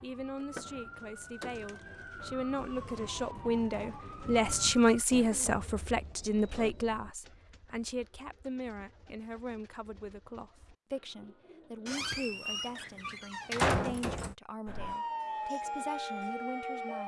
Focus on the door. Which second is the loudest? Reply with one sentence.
The volume of the door peaks at 14 seconds.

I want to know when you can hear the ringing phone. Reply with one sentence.
The ringing phone can't be heard in this clip.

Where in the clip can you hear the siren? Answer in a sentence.
You can hear the siren from 0.0 to 5.0 s and from 14.7 to 17.0 s.